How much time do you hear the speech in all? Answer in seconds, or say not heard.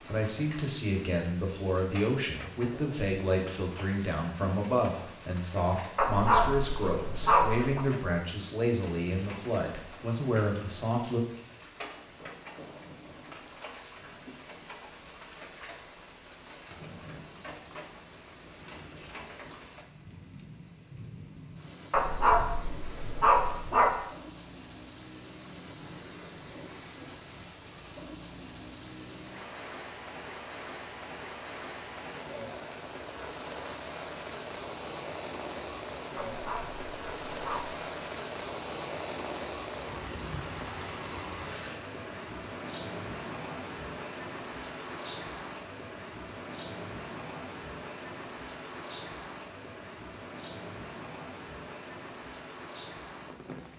11 s.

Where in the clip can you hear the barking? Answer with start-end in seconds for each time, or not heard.
6.0-7.8, 21.9-23.9, 36.1-37.8.